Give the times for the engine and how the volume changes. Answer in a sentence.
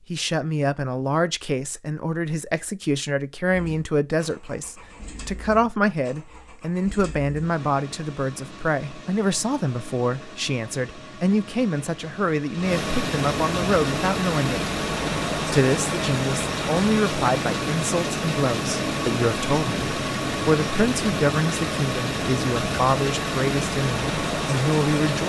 The engine can be heard from 3.5 to 25.2 s, getting louder.